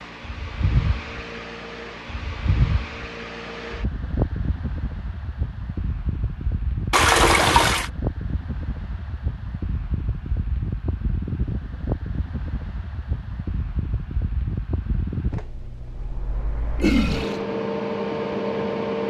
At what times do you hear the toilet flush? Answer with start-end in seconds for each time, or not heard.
6.9-7.8, 16.8-17.4.